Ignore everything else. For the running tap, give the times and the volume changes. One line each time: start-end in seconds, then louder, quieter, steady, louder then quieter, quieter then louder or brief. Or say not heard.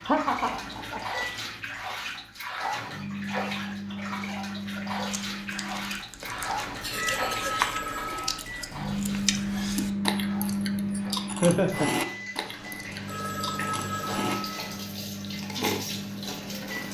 0.0-16.9 quieter then louder.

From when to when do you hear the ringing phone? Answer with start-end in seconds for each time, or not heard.
0.5-1.1, 6.2-8.4, 12.3-14.9.